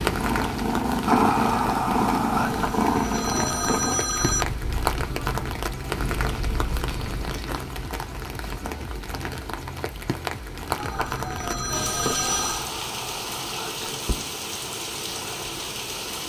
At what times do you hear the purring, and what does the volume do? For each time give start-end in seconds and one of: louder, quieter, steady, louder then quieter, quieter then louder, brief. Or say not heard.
0.0-7.3 quieter.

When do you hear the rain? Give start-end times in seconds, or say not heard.
0.0-16.2.